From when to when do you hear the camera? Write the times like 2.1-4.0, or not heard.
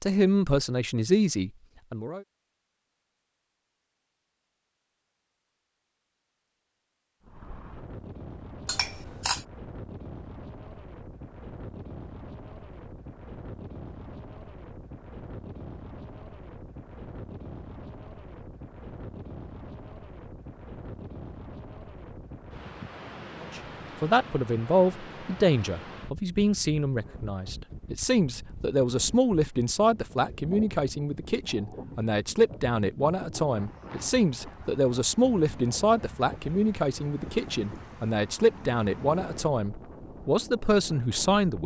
8.7-9.4.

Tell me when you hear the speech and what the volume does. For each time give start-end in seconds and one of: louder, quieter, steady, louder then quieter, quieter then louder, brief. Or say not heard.
0.0-2.2 brief
23.4-41.6 steady.